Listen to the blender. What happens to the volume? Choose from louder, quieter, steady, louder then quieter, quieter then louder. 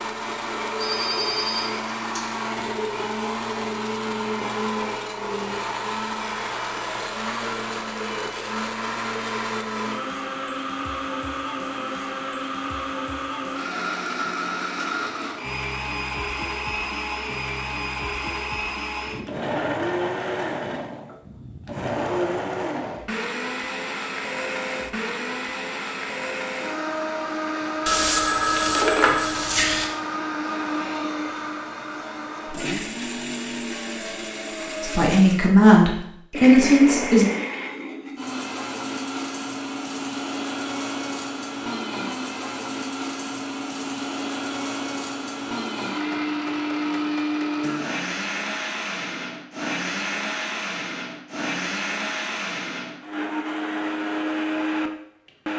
steady.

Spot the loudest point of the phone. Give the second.
29 s.